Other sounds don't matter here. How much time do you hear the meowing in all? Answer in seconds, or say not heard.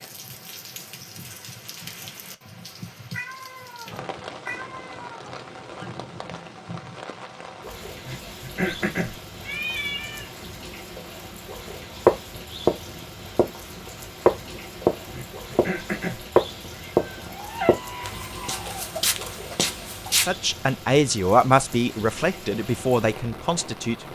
6 s.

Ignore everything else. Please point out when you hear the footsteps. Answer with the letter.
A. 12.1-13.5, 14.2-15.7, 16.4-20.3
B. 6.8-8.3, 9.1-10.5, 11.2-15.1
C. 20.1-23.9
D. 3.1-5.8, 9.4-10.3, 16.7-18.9
A.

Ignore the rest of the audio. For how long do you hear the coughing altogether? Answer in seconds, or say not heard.
2 s.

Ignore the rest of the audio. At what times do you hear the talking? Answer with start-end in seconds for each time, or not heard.
20.1-23.9.